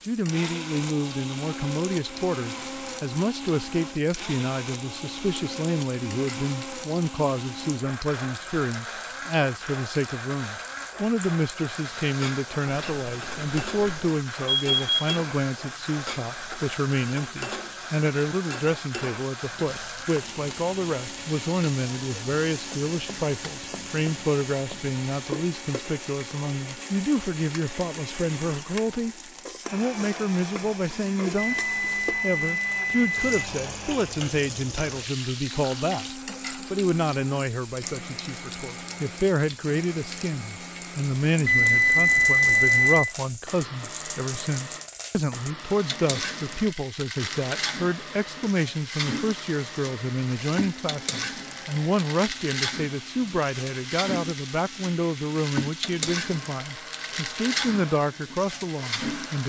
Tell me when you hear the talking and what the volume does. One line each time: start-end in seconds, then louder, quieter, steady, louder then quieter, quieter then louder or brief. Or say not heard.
0.1-59.4 steady.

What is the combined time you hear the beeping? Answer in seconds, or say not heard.
6 s.